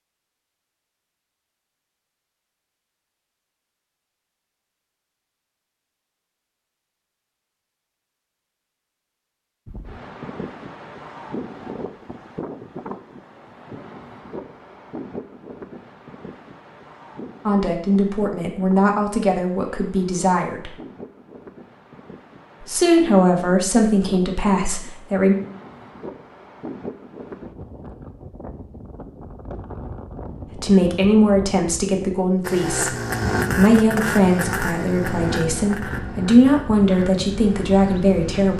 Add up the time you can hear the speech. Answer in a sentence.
The speech can be heard for 13 seconds in total.